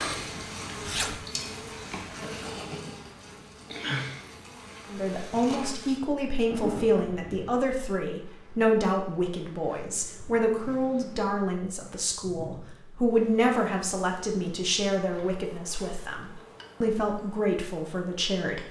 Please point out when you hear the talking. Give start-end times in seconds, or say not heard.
4.9-18.6.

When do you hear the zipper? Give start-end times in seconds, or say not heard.
0.8-1.2, 6.5-7.7, 15.1-16.8.